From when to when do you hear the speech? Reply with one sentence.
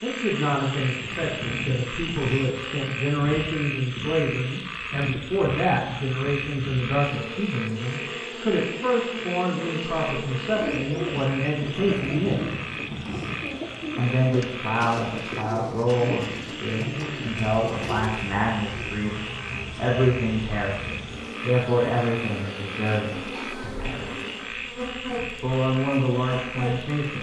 The speech can be heard from 0.0 to 12.6 s, from 13.9 to 24.1 s and from 25.4 to 27.1 s.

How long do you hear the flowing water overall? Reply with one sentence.
The flowing water can't be heard in this clip.